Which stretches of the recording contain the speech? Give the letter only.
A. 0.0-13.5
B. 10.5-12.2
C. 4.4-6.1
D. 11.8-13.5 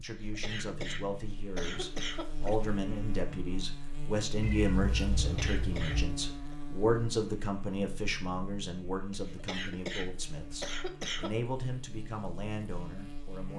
A.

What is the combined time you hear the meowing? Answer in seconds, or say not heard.
2 s.